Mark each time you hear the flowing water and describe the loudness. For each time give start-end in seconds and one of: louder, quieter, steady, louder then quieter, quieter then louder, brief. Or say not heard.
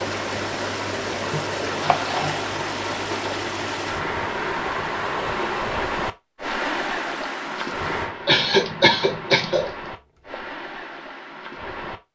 0.0-11.9 quieter.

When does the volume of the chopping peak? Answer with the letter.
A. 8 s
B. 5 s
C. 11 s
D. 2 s
D.